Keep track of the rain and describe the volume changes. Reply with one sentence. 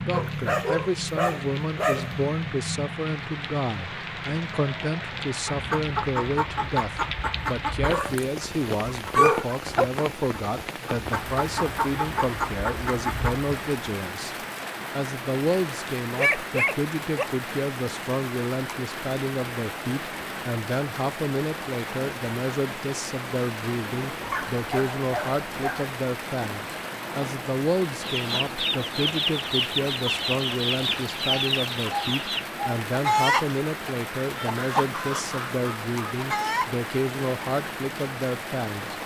The volume of the rain stays about the same.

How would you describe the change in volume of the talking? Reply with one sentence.
The volume of the talking stays about the same.